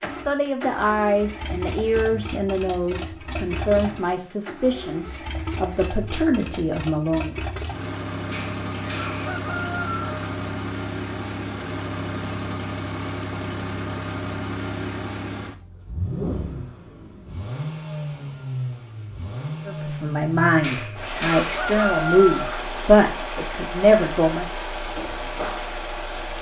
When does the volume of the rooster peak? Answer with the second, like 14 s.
22 s.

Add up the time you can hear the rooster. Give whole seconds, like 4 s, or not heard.
4 s.